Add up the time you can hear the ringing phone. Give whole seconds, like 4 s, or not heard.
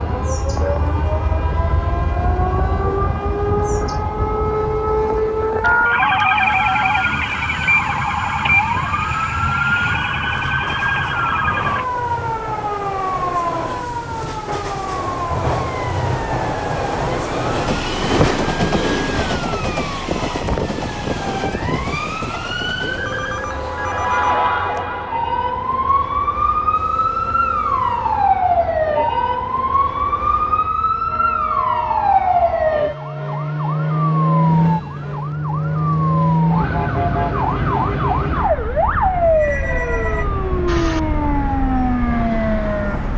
5 s.